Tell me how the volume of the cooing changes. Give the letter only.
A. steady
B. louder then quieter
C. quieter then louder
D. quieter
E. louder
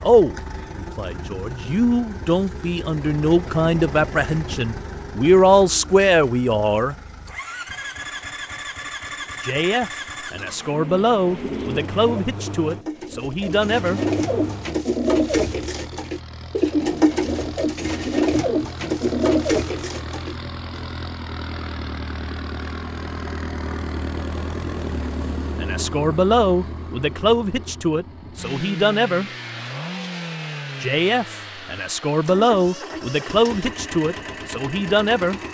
E.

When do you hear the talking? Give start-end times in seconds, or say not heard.
0.0-7.0, 9.4-14.0, 25.6-29.3, 30.8-35.4.